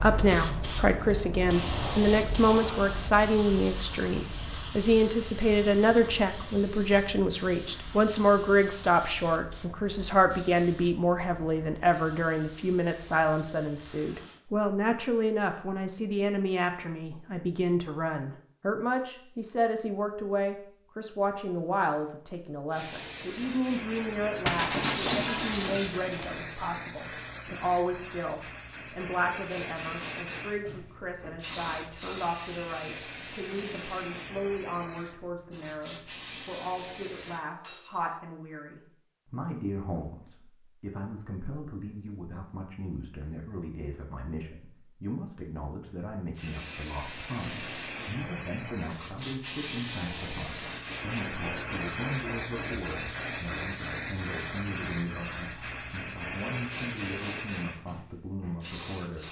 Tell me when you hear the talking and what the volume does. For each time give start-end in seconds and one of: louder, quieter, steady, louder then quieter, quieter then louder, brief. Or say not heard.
0.0-59.2 quieter.